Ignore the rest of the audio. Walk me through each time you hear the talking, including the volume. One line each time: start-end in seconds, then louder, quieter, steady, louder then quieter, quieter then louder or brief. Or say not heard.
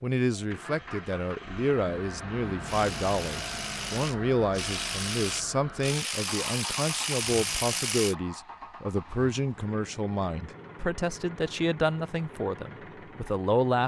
0.0-13.8 steady.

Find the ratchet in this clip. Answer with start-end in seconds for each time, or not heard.
2.6-8.2.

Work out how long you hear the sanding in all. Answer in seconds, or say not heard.
not heard.